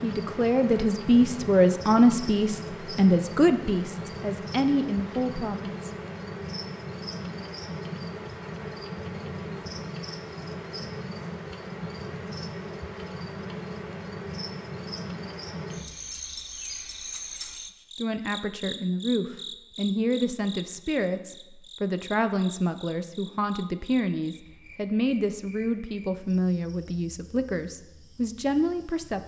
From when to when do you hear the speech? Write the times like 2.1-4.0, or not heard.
0.0-5.9, 17.9-29.2.